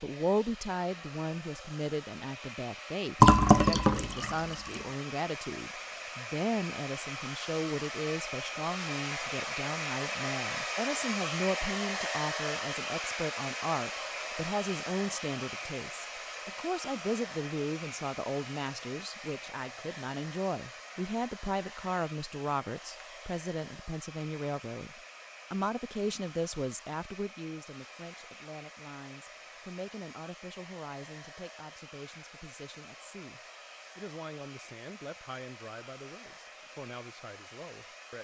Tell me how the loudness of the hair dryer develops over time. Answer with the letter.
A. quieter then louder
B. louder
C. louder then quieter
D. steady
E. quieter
C.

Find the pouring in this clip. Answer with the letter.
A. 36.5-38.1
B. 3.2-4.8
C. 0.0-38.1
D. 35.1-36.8
B.